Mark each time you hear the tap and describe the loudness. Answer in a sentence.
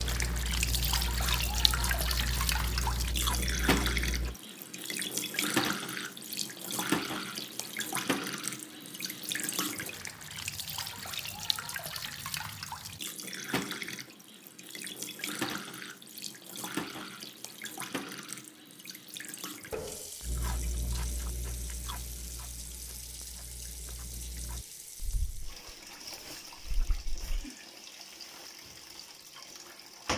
The tap can be heard from 0.0 to 30.1 s, getting quieter.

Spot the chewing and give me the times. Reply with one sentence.
You can hear the chewing from 0.0 to 4.3 s and from 20.2 to 27.4 s.